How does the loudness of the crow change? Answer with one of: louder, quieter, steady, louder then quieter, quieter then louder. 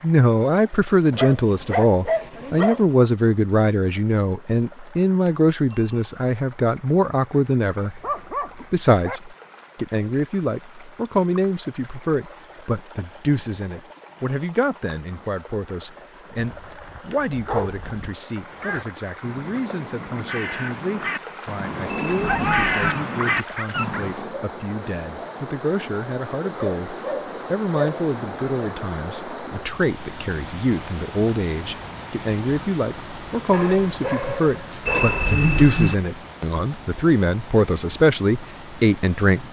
louder.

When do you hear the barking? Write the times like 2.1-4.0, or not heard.
1.1-2.9, 7.8-9.2, 16.6-18.1, 22.2-24.1, 26.6-28.1, 33.5-35.4.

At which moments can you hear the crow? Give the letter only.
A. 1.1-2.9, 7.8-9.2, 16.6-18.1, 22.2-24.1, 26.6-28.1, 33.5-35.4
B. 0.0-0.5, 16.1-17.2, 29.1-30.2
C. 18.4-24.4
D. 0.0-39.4
C.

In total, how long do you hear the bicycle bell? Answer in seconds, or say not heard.
3 s.